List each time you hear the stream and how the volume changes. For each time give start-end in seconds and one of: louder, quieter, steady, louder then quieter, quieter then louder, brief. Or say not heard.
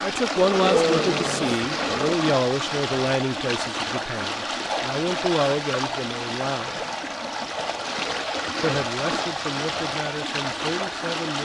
0.0-11.4 steady.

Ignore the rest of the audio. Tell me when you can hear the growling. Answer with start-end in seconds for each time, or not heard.
0.3-2.1, 7.9-8.3.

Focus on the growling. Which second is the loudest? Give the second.
1 s.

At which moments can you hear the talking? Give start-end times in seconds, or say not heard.
0.0-6.8, 8.6-11.4.